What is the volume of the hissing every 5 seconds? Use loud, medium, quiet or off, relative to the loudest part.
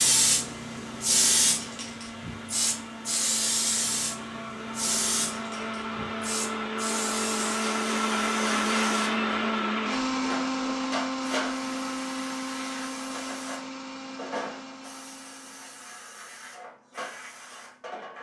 loud, medium, medium, quiet.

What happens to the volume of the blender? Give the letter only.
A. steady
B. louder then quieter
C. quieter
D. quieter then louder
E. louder
B.